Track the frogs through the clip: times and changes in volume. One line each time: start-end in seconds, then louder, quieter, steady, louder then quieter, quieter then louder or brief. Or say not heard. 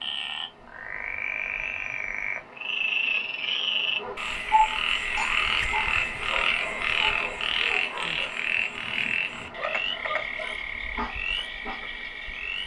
0.0-12.6 louder then quieter.